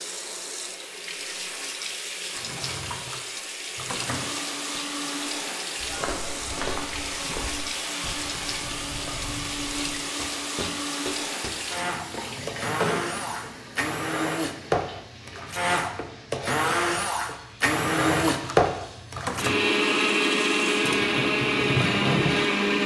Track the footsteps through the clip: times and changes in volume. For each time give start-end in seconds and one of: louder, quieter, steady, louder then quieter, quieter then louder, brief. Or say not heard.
5.8-11.6 quieter then louder.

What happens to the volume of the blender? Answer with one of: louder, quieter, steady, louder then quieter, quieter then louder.
louder.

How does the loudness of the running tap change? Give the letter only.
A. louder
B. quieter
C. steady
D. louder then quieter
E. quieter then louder
E.